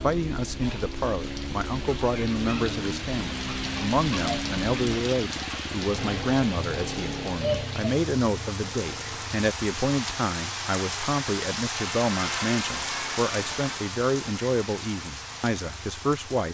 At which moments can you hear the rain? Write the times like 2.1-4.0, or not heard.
0.0-16.4.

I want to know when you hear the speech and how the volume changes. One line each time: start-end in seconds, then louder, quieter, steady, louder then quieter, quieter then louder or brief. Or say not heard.
0.0-16.4 steady.